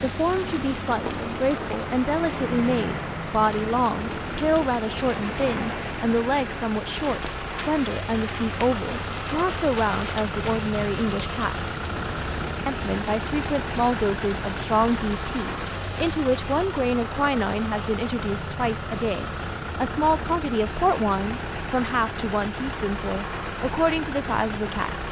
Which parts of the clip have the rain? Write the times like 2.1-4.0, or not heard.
0.0-16.2.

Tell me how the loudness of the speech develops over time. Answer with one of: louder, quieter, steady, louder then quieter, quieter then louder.
steady.